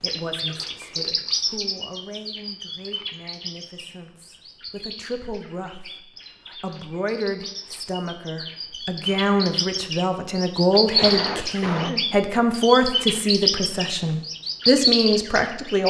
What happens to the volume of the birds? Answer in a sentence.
The loudness of the birds goes down, then up.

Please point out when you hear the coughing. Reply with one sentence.
You can hear the coughing from 10.8 to 12.1 s.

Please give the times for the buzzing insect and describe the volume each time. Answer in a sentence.
The buzzing insect can't be heard in this clip.